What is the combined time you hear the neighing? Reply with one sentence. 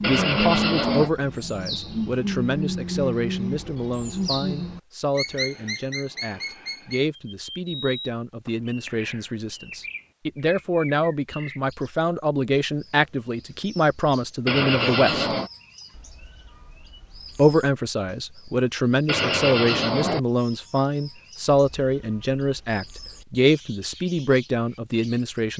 You can hear the neighing for 3 seconds altogether.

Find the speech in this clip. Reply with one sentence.
You can hear the speech from 0.1 to 15.3 s and from 17.4 to 25.5 s.